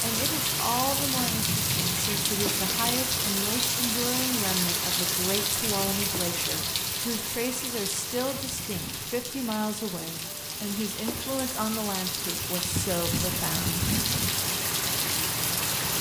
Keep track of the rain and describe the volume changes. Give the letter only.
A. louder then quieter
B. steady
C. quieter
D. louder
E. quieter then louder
E.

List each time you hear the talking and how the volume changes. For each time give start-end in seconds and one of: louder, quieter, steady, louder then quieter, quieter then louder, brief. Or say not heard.
0.0-13.8 steady.